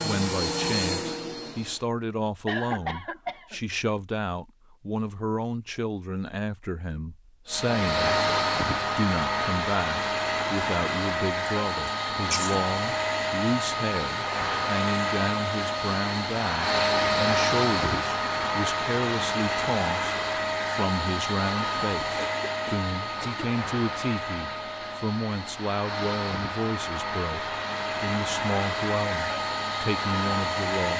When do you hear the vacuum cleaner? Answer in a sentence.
You can hear the vacuum cleaner from 0.0 to 1.9 s and from 7.5 to 30.9 s.